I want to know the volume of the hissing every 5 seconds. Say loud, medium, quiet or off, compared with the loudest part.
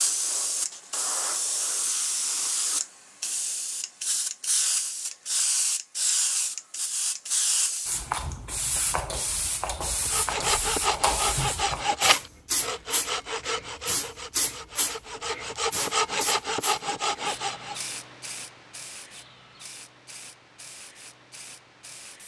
loud, loud, loud, medium, quiet.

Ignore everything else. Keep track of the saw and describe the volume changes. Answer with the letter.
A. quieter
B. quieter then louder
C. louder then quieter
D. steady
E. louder
B.